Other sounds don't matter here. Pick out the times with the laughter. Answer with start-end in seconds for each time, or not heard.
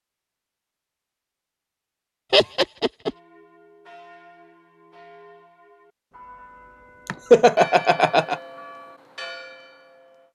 2.3-3.1, 7.0-8.4.